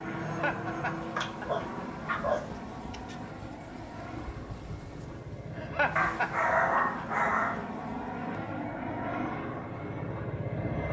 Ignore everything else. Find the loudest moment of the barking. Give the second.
7 s.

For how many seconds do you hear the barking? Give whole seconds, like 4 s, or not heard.
4 s.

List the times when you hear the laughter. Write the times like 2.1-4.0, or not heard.
0.2-1.6, 5.5-7.2.